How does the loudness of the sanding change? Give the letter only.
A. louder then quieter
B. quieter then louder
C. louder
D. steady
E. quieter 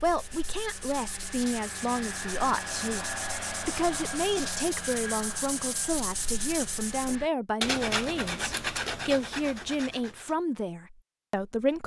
C.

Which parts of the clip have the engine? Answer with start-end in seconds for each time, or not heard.
0.0-7.3.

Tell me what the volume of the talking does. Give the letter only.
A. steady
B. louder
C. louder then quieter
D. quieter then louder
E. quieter
A.